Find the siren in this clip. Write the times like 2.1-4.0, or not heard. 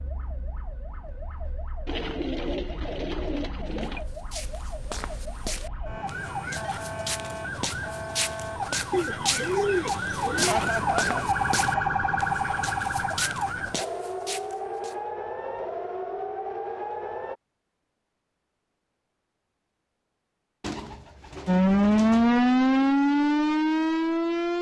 0.0-17.4, 21.4-24.5.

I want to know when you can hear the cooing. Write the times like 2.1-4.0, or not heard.
1.9-4.0, 8.9-10.6, 20.6-22.3.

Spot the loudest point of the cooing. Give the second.
10 s.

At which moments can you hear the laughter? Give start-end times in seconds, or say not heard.
10.3-11.2.